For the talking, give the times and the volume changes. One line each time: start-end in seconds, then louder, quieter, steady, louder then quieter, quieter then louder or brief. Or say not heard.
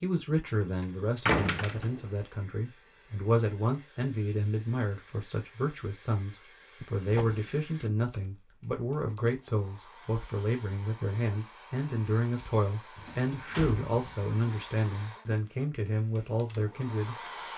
0.0-17.1 steady.